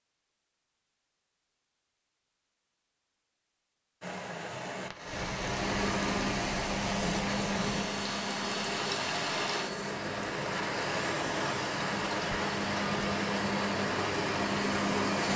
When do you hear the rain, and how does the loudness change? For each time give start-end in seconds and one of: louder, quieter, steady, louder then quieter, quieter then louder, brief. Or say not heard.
4.0-15.3 steady.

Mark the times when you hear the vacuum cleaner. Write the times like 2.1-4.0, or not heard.
5.4-15.3.